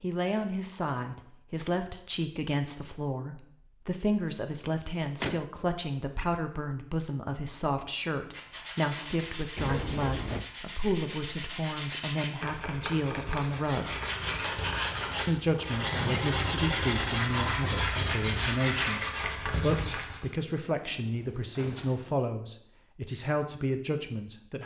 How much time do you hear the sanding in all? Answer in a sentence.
You can hear the sanding for 12 seconds altogether.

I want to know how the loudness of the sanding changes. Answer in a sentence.
The loudness of the sanding goes up.